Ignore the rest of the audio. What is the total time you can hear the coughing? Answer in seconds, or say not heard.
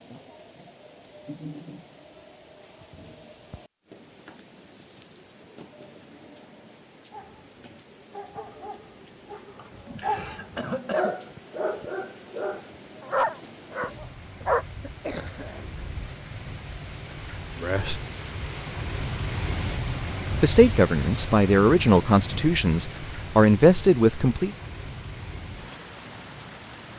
3 s.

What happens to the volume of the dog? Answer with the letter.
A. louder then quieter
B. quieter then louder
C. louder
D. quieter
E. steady
C.